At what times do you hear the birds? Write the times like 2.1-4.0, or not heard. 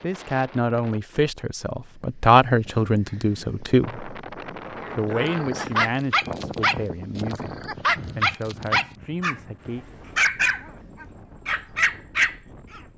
not heard.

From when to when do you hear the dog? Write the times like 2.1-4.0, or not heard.
5.5-9.4, 10.2-12.8.